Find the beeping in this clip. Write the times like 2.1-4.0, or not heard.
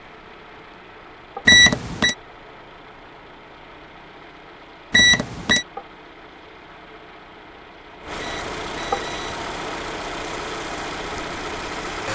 1.4-2.1, 4.9-5.7, 8.2-9.3.